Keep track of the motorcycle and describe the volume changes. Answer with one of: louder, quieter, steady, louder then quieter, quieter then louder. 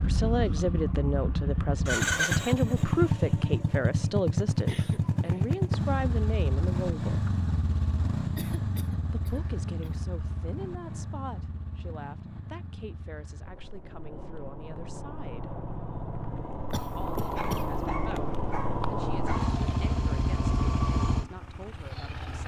quieter then louder.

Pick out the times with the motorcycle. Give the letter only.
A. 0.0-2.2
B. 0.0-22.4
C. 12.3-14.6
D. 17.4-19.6
B.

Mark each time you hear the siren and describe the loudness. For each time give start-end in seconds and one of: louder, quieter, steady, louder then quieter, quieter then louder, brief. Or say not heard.
not heard.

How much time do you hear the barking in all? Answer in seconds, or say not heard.
2 s.